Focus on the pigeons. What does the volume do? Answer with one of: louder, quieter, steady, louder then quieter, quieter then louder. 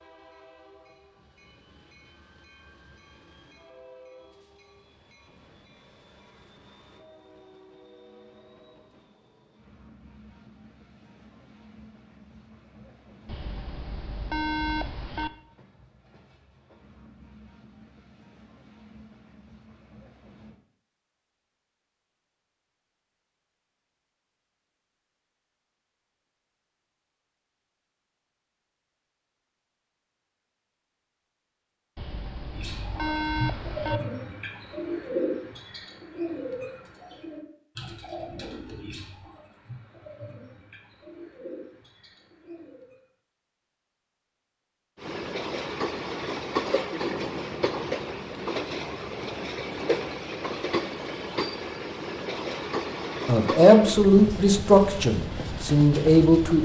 quieter.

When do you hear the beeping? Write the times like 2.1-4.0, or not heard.
13.2-15.3, 31.9-34.0.